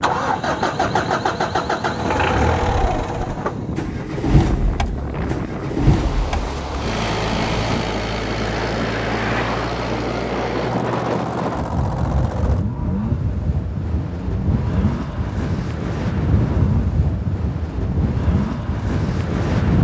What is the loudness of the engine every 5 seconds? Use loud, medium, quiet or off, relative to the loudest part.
loud, loud, medium, medium.